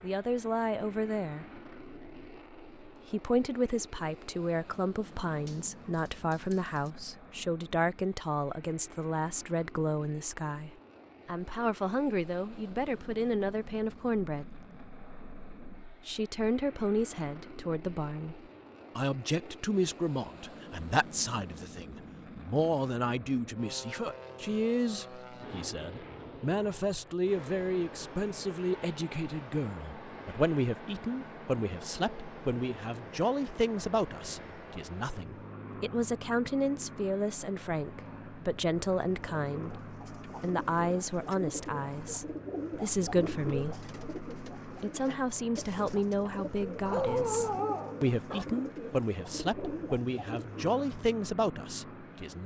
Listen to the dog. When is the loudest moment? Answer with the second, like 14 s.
47 s.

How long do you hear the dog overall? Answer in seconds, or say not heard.
3 s.